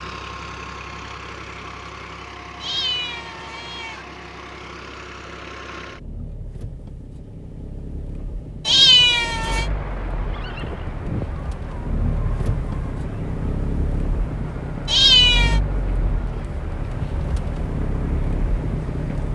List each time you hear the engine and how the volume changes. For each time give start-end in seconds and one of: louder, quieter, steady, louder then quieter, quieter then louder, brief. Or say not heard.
0.0-19.2 louder.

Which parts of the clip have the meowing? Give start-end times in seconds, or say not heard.
2.6-4.0, 8.7-9.7, 14.8-15.6.